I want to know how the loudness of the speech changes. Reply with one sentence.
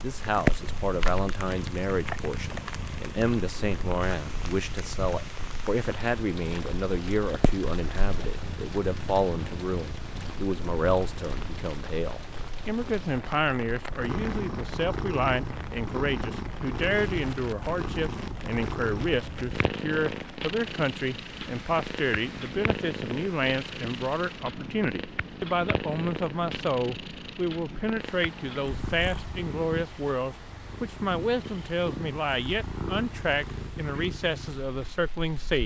The volume of the speech stays about the same.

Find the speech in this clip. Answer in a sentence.
The speech can be heard from 0.0 to 35.6 s.